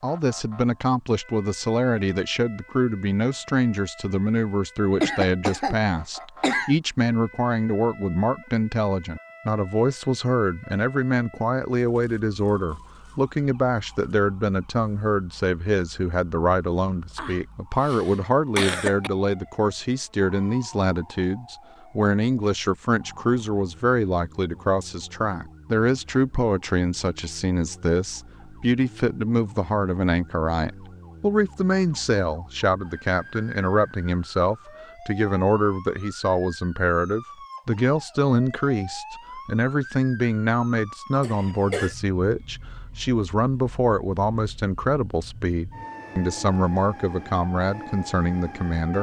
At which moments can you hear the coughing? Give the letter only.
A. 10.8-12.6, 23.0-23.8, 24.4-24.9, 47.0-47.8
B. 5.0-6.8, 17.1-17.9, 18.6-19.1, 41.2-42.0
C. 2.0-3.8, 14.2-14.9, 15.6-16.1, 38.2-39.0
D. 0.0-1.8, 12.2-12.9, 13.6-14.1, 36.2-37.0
B.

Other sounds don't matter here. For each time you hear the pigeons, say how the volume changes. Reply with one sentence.
You can't hear the pigeons here.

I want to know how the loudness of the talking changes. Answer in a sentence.
The loudness of the talking stays about the same.